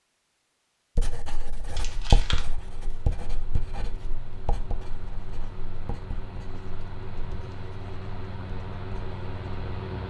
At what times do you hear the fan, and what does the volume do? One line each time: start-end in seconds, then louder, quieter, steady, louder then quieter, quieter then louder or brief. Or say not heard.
1.6-10.0 louder.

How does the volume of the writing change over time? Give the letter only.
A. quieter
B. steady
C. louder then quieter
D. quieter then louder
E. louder
A.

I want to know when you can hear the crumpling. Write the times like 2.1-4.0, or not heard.
1.8-2.5.